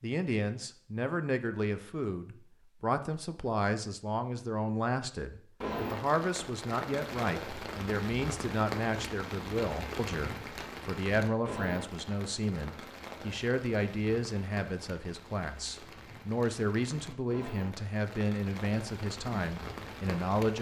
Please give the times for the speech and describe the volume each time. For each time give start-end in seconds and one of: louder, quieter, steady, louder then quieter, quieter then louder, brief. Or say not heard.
0.0-20.5 steady.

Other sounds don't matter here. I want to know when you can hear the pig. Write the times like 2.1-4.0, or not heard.
not heard.